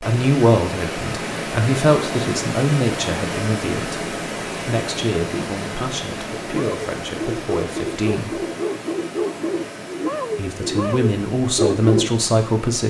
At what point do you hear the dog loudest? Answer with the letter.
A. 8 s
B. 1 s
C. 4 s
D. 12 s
D.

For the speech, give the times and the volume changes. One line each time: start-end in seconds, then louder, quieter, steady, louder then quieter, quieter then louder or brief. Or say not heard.
0.0-8.4 quieter
10.3-12.8 brief.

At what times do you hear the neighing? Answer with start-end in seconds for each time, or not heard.
not heard.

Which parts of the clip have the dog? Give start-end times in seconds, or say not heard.
6.4-12.1.